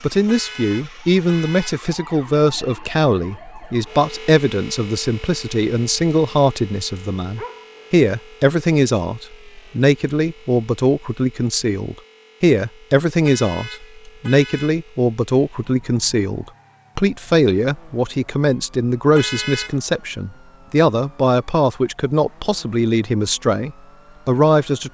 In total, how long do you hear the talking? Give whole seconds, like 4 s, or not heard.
25 s.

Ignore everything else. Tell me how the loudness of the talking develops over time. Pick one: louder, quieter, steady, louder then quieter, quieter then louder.
steady.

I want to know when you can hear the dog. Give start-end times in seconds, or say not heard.
7.3-8.0.